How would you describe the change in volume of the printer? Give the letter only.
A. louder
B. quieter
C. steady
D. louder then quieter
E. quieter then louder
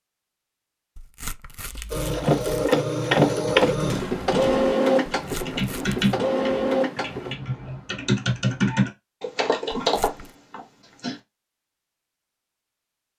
E.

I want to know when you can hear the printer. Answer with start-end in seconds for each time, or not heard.
1.9-7.3.